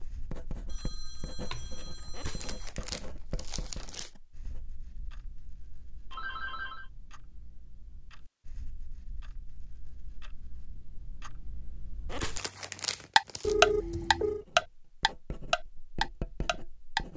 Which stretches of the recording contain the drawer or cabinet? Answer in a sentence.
You can't hear the drawer or cabinet here.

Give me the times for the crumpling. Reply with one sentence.
You can hear the crumpling from 2.1 to 4.1 s and from 12.1 to 13.6 s.